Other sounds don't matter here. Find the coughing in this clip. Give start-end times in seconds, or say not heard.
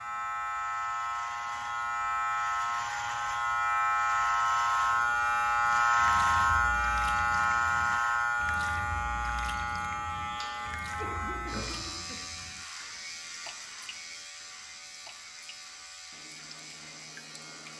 10.9-12.2.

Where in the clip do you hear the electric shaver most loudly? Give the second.
6 s.